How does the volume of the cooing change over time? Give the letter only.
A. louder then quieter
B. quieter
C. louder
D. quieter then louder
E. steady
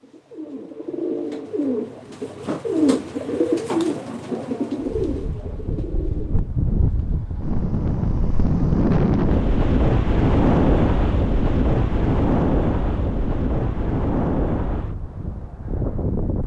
A.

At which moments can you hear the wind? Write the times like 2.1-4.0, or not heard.
4.8-16.4.